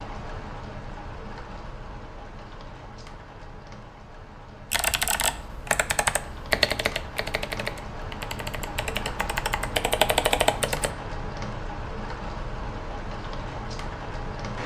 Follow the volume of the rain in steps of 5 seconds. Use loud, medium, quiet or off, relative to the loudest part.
medium, loud, loud.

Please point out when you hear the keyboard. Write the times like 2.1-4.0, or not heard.
4.7-10.9.